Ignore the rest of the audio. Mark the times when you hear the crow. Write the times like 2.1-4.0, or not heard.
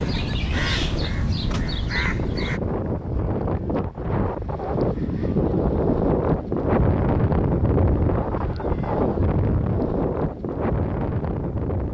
0.0-2.6.